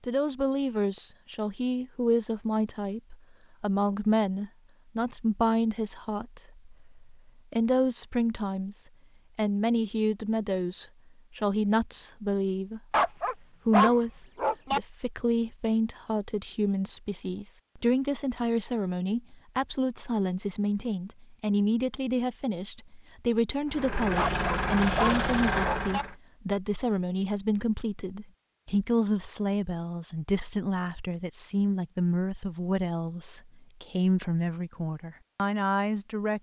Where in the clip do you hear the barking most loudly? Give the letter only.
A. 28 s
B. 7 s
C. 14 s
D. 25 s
C.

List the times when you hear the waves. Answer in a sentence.
You can't hear the waves here.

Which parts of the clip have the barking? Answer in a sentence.
The barking can be heard from 12.9 to 14.8 s and from 24.1 to 26.1 s.